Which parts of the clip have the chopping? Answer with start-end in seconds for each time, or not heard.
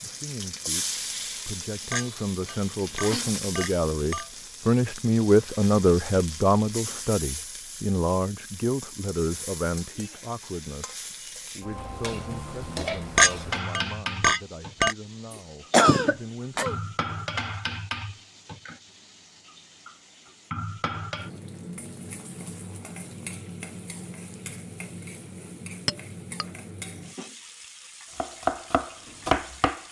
28.1-29.8.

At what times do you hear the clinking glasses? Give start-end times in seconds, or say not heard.
1.9-4.3, 13.2-14.9, 25.9-26.4.